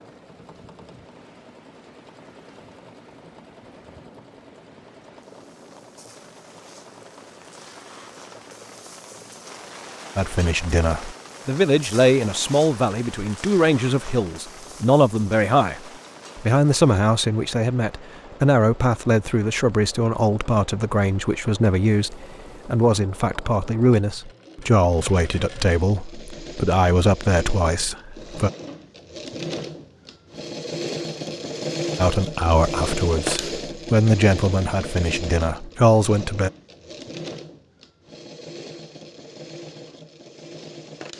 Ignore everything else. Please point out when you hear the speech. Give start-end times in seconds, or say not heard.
10.2-28.5, 31.9-36.5.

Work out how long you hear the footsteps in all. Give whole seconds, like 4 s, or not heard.
not heard.